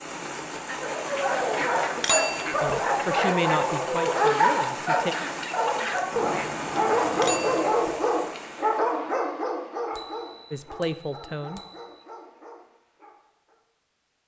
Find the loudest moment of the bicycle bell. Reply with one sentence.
The loudest moment of the bicycle bell is at 2 seconds.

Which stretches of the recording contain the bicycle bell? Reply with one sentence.
The bicycle bell can be heard from 1.9 to 2.5 s, from 7.2 to 8.0 s and from 9.9 to 12.1 s.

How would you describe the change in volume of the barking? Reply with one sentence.
The volume of the barking goes down.